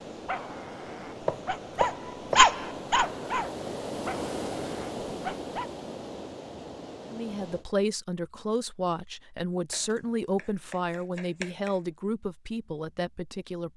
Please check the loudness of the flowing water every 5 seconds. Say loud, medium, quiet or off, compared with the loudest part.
loud, loud, off.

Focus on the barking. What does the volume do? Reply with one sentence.
The volume of the barking goes up, then down.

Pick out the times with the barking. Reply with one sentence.
The barking can be heard from 0.1 to 5.7 s.